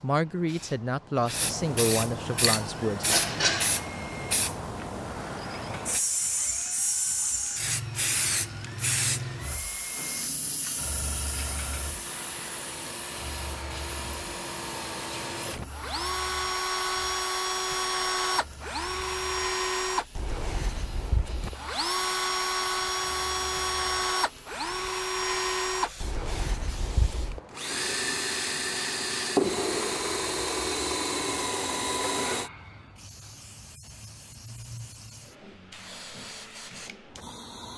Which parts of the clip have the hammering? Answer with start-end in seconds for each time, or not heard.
not heard.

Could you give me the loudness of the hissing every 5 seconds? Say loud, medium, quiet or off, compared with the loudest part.
loud, loud, medium, quiet, quiet, quiet, quiet, quiet.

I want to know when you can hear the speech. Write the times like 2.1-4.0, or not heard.
0.0-3.0.